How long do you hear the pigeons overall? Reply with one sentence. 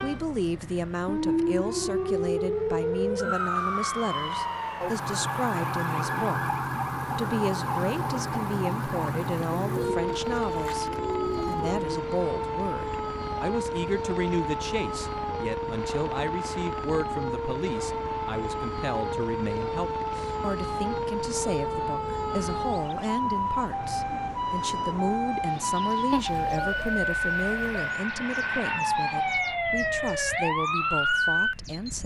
You can hear the pigeons for 4 seconds altogether.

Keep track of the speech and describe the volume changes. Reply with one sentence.
The loudness of the speech stays about the same.